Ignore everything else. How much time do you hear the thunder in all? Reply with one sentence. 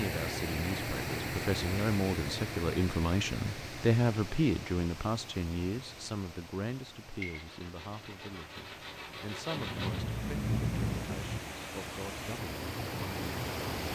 The thunder can be heard for 2 seconds in total.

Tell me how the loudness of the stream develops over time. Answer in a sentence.
The volume of the stream goes down, then up.